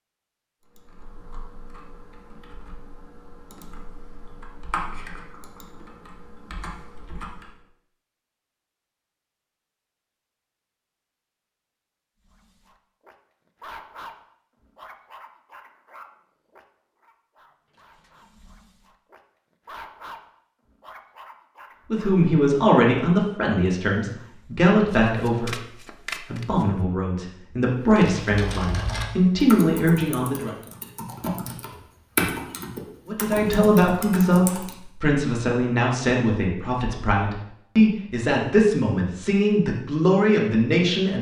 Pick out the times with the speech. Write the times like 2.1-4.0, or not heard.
21.9-30.6, 33.0-41.1.